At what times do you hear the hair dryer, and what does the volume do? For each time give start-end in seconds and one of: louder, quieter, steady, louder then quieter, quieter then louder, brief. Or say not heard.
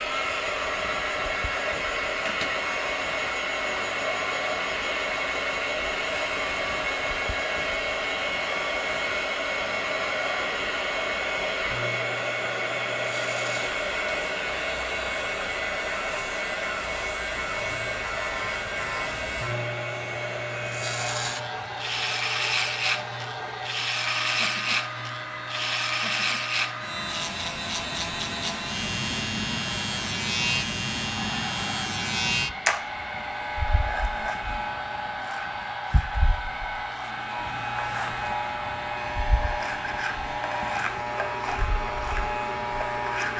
0.0-43.3 quieter.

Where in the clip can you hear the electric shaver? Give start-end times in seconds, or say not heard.
0.0-43.3.